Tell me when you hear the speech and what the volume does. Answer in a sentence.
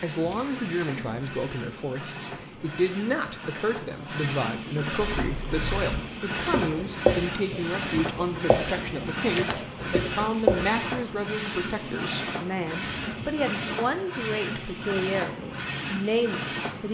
The speech can be heard from 0.0 to 16.9 s, at a steady volume.